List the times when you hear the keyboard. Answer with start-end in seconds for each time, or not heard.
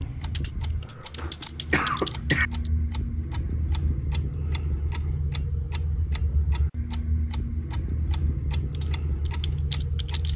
0.1-2.7, 8.7-10.3.